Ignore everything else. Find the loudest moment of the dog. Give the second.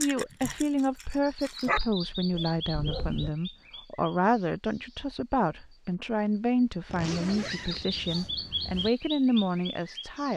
2 s.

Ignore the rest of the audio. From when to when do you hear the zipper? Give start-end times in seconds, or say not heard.
6.8-8.9.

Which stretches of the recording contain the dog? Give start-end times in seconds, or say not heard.
0.0-3.3.